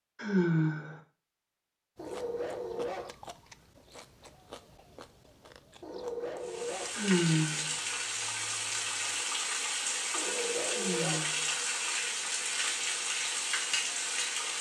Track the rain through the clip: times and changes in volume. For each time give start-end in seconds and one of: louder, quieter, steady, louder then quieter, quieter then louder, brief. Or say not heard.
6.4-14.5 steady.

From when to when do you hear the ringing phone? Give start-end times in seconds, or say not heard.
not heard.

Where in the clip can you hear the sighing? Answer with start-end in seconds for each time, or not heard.
0.1-1.0, 6.9-7.8, 10.7-11.5.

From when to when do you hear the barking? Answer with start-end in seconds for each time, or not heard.
1.9-3.1, 5.8-7.0, 10.1-11.2.